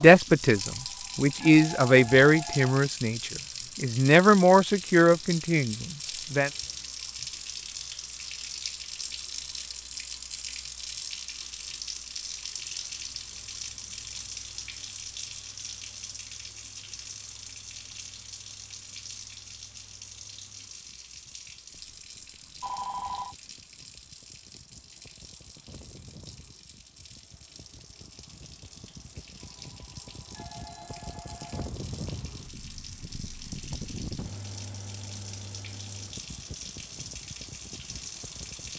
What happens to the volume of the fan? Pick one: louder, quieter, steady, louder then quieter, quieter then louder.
louder.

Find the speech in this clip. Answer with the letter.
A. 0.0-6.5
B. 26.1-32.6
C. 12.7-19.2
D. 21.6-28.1
A.